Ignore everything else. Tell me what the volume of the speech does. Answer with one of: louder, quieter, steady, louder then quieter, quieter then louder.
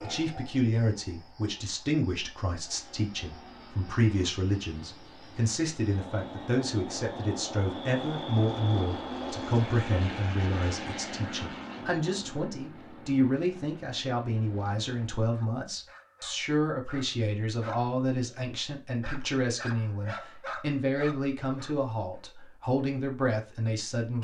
steady.